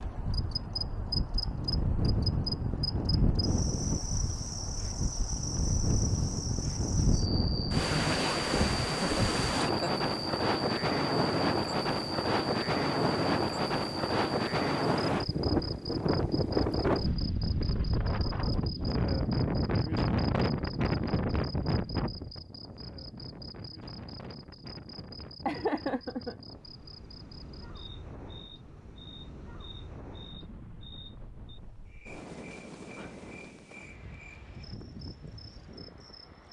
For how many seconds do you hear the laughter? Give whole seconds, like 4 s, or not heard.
3 s.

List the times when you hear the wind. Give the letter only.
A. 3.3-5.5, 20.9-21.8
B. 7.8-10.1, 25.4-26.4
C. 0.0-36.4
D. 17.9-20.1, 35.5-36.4
C.